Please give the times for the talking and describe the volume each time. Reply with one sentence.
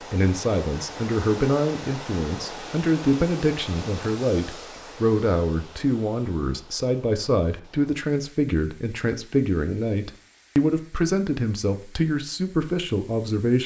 The talking can be heard from 0.1 to 13.6 s, at a steady volume.